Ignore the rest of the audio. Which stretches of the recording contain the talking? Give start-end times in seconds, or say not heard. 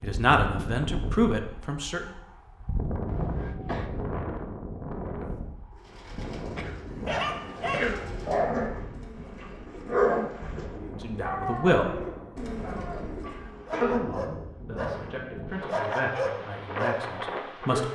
0.0-2.0, 10.9-12.0, 13.8-17.8.